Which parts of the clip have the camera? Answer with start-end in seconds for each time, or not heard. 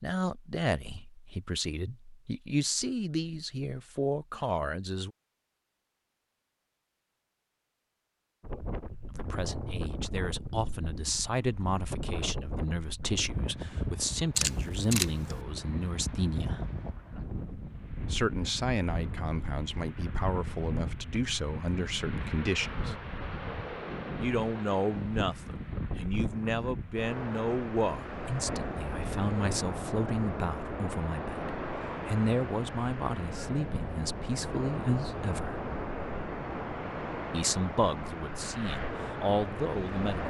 14.3-15.4.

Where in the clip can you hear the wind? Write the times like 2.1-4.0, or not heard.
8.4-40.2.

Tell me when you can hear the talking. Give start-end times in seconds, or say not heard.
0.0-5.1, 9.1-16.7, 18.1-22.9, 24.2-35.6, 37.3-40.2.